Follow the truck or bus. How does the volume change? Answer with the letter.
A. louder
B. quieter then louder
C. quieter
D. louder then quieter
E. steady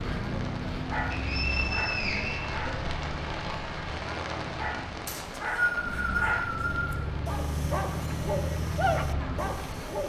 B.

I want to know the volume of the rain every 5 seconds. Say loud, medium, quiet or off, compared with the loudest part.
loud, medium.